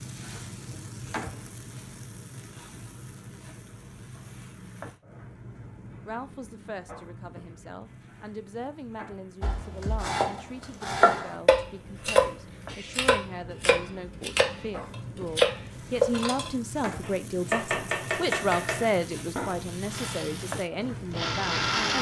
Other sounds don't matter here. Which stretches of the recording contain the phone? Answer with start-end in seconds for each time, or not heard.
not heard.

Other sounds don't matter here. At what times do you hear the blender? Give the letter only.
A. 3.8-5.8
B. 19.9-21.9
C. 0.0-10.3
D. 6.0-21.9
B.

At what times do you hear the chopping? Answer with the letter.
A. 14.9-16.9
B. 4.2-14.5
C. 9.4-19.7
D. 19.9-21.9
C.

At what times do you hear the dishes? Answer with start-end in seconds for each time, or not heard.
not heard.